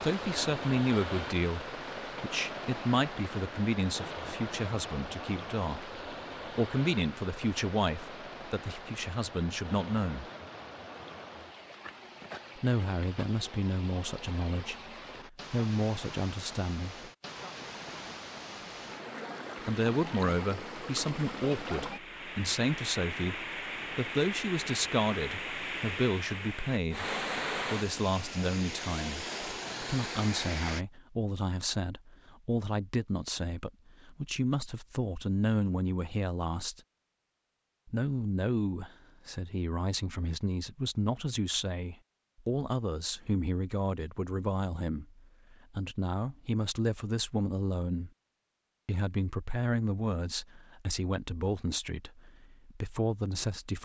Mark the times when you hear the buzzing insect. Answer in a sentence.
You can't hear the buzzing insect here.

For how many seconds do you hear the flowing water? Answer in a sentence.
You can hear the flowing water for 31 seconds altogether.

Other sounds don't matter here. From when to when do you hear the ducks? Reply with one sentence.
The ducks can't be heard in this clip.